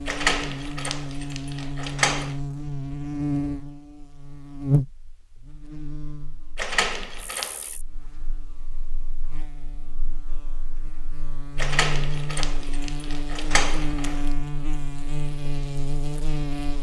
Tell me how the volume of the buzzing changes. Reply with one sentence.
The volume of the buzzing goes down, then up.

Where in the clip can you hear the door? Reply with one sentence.
The door can be heard from 0.1 to 2.4 s, from 6.5 to 7.7 s and from 11.6 to 14.3 s.